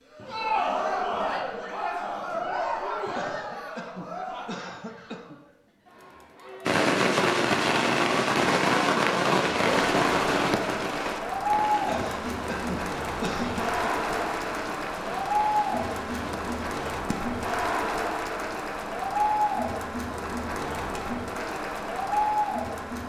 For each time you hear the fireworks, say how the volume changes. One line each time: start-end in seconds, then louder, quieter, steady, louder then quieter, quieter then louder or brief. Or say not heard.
6.7-17.4 quieter.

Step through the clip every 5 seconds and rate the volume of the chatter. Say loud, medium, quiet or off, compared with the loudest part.
loud, medium, loud, loud, loud.